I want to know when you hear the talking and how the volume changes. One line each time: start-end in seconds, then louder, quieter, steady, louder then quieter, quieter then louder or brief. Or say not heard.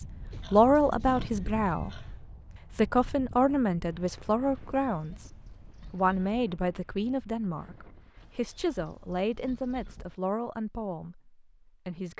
0.5-1.9 brief
2.8-12.1 quieter.